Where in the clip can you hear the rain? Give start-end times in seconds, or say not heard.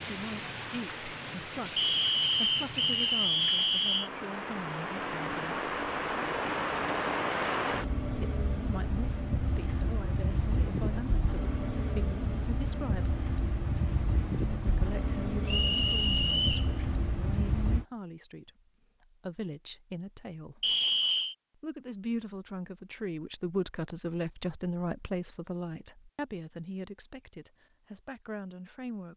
0.0-17.9.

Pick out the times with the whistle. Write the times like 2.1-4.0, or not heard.
1.8-4.1, 15.4-16.7, 20.6-21.4.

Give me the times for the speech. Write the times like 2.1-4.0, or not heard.
0.0-5.8, 8.1-13.2, 14.6-20.8, 21.6-29.1.